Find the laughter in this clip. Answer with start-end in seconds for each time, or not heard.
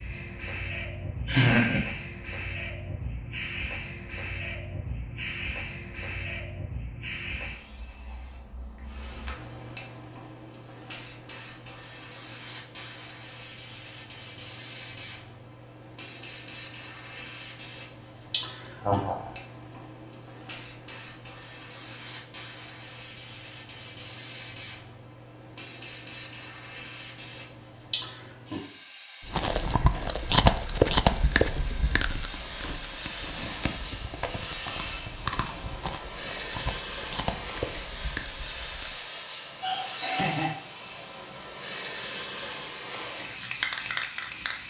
1.2-1.8, 18.6-19.3, 39.6-40.5.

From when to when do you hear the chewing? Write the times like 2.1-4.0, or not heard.
29.2-39.0.